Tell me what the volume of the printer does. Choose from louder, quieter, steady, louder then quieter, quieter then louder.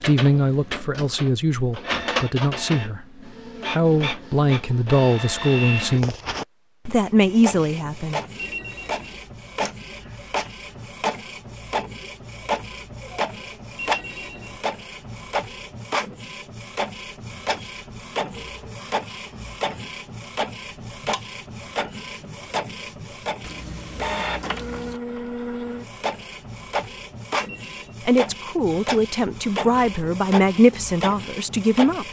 steady.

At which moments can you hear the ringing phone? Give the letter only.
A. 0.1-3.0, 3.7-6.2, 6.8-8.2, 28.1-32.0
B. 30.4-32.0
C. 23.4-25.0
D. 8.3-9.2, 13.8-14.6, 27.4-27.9
D.